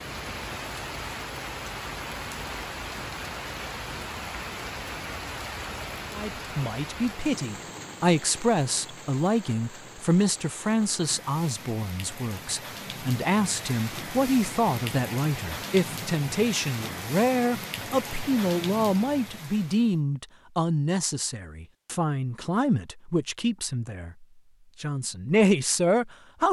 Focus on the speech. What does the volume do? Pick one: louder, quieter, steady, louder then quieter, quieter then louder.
steady.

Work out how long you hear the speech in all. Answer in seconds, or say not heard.
20 s.